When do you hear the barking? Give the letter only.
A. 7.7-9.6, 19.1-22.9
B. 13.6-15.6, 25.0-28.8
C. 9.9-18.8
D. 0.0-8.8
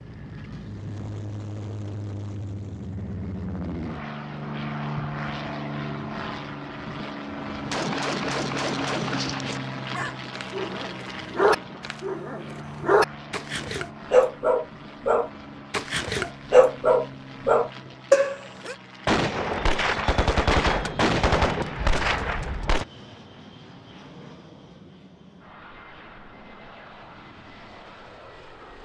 C.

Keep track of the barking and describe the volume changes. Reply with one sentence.
The volume of the barking goes up.